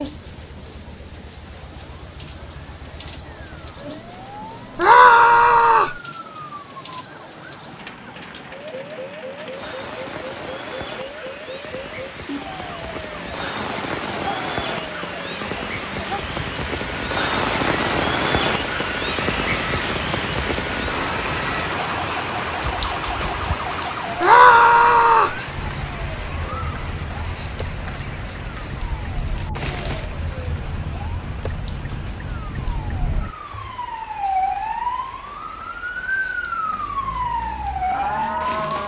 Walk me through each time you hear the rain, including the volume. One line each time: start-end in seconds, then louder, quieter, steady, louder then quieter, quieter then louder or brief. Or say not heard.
0.0-38.8 louder then quieter.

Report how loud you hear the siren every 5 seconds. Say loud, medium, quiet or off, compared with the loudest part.
quiet, quiet, medium, medium, medium, medium, loud, loud.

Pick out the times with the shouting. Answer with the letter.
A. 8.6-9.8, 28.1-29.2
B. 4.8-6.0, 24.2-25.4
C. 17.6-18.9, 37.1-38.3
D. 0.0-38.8
B.